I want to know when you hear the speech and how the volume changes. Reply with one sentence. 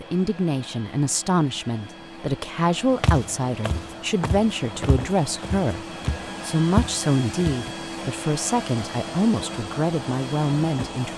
The speech can be heard from 0.0 to 11.1 s, at a steady volume.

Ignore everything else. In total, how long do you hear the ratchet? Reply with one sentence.
You can't hear the ratchet here.